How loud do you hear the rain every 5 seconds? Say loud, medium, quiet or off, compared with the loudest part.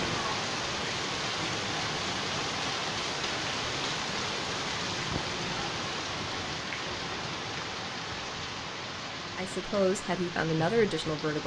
loud, loud, medium.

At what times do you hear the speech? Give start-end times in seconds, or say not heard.
9.3-11.4.